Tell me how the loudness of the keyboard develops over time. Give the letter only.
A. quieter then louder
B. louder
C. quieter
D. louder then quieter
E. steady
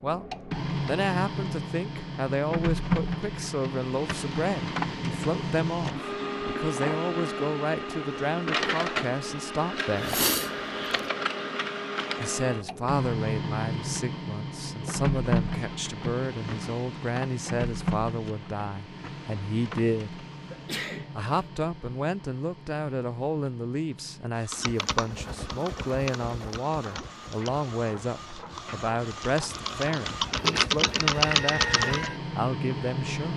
A.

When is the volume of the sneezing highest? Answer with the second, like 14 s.
10 s.